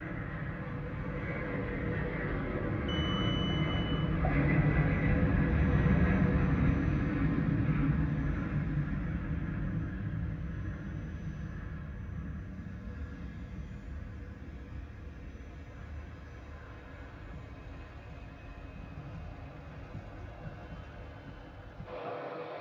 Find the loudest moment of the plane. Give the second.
6 s.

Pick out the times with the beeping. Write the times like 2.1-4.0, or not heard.
2.9-4.5.